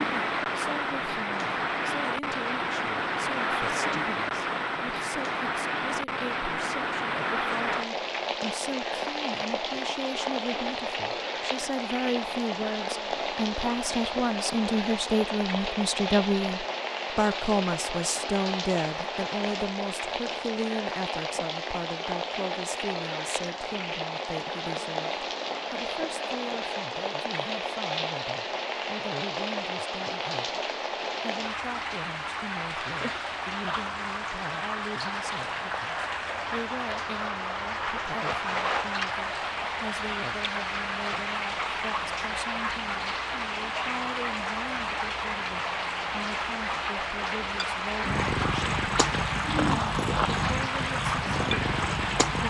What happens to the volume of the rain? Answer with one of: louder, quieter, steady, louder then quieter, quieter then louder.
steady.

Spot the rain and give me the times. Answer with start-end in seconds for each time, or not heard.
0.0-52.4.